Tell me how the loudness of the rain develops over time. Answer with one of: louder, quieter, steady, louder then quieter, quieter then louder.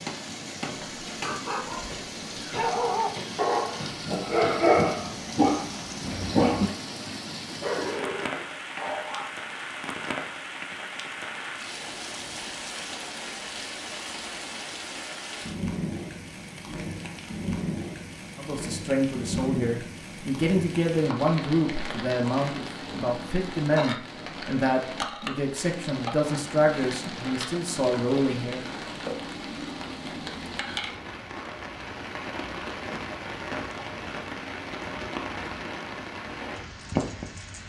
steady.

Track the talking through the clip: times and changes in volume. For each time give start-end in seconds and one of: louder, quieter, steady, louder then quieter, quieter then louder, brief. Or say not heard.
18.4-28.6 steady.